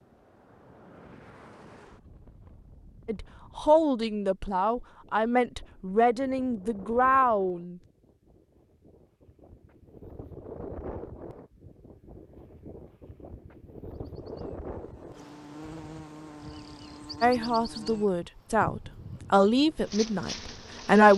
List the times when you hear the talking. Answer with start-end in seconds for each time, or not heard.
3.0-7.8, 17.2-21.1.